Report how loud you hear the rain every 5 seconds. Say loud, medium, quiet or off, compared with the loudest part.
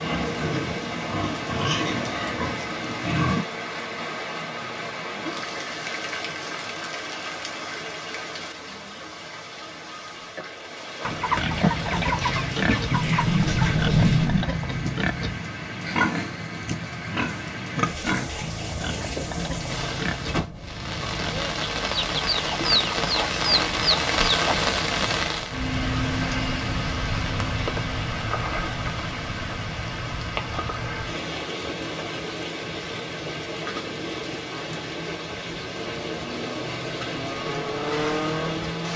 medium, medium, medium, medium, loud, loud, medium, medium.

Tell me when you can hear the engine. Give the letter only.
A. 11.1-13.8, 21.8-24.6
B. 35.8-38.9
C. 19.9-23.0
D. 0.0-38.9
B.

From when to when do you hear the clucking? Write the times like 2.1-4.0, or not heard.
11.1-13.8, 21.8-24.6.